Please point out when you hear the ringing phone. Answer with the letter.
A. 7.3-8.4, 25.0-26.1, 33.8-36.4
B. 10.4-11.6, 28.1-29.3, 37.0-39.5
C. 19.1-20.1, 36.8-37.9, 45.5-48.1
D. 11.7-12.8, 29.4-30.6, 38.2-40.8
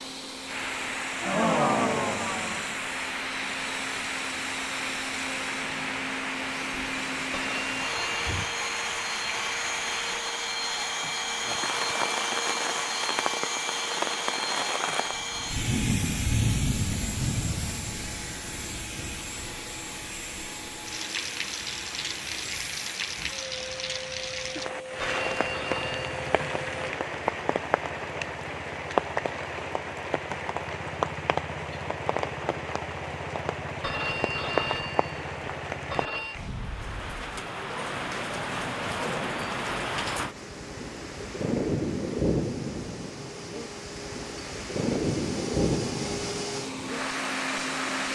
A.